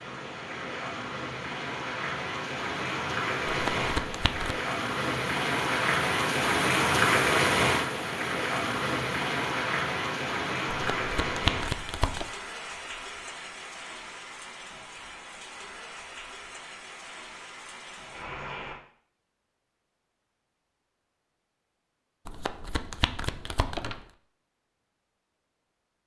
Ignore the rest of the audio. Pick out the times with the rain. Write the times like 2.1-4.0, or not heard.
0.0-18.8.